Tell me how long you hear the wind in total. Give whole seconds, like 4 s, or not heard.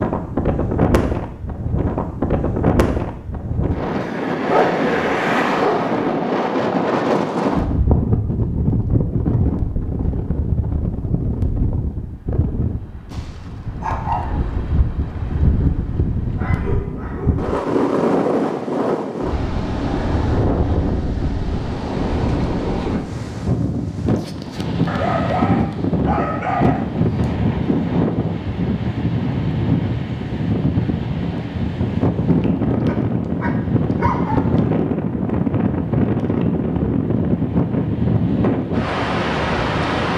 40 s.